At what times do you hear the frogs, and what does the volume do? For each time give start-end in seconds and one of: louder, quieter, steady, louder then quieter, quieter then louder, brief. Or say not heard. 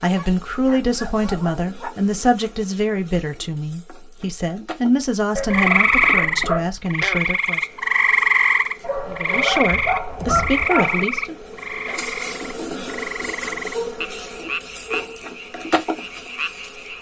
5.5-16.9 quieter.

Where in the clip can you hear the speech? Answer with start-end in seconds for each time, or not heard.
0.0-7.7, 9.1-11.3.